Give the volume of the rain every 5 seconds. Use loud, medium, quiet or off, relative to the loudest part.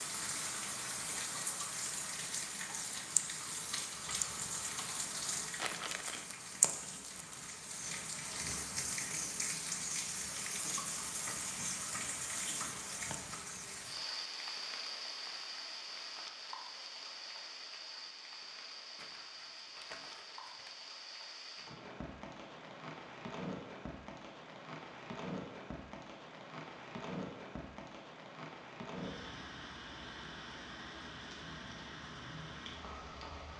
loud, loud, loud, medium, medium, medium, medium.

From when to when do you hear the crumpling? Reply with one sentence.
The crumpling can be heard from 5.5 to 6.2 s and from 18.9 to 20.8 s.